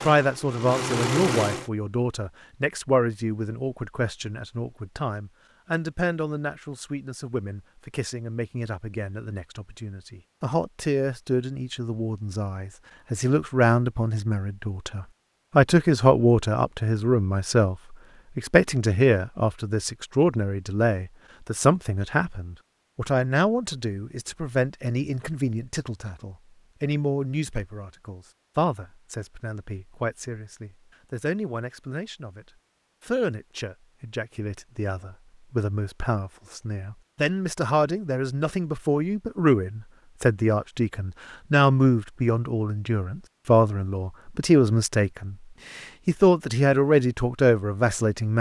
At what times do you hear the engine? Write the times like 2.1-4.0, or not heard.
0.0-1.7.